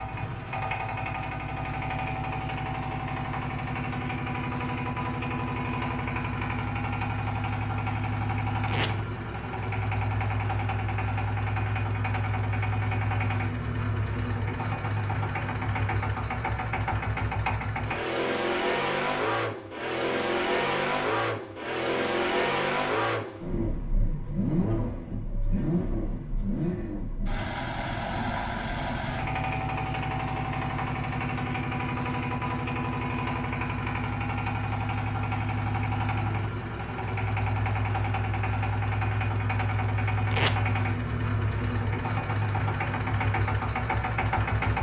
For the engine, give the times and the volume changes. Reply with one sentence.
You can hear the engine from 0.0 to 44.7 s, at a steady volume.